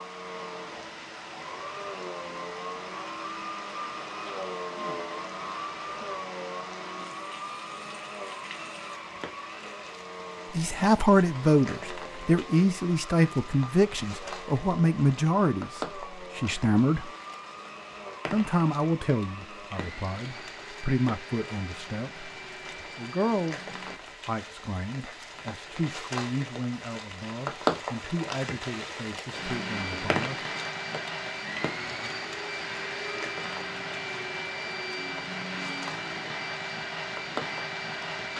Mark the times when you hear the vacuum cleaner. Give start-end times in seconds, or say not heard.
0.0-24.0, 29.3-38.3.